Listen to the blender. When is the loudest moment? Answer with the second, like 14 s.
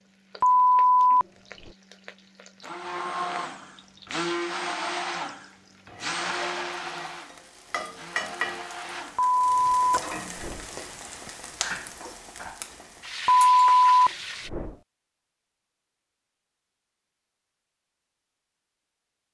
5 s.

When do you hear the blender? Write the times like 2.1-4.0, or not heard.
2.6-9.3.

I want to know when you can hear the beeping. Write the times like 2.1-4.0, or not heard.
0.4-1.7, 9.2-10.7, 13.2-14.8.